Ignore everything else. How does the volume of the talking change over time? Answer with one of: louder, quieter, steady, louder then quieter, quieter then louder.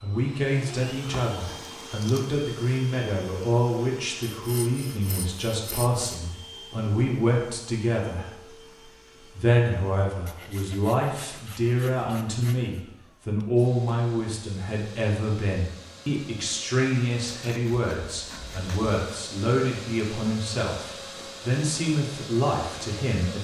steady.